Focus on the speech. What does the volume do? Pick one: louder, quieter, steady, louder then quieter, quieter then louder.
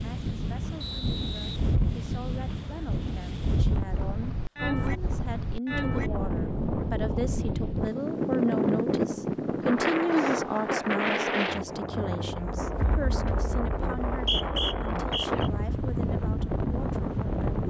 louder then quieter.